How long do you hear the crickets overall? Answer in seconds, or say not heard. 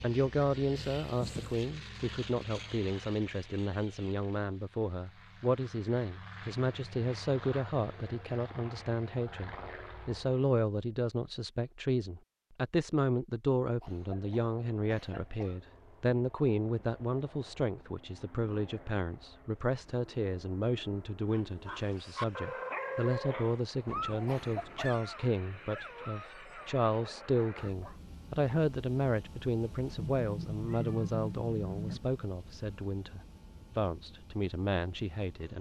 not heard.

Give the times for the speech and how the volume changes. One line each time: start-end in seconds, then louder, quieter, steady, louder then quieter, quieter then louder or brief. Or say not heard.
0.0-35.5 steady.